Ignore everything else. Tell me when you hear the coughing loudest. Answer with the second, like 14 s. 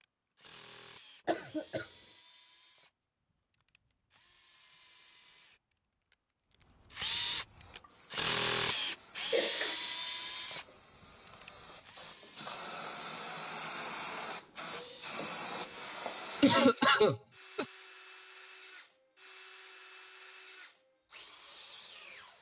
17 s.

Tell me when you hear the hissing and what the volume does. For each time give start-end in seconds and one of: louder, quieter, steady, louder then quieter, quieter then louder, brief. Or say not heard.
7.4-16.6 louder.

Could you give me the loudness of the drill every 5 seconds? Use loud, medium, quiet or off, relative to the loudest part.
quiet, loud, medium, quiet, quiet.